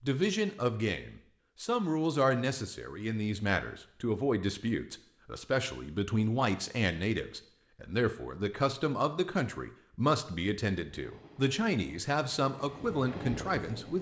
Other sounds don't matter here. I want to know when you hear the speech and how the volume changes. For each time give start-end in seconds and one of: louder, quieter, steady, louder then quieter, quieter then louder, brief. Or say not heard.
0.0-13.9 steady.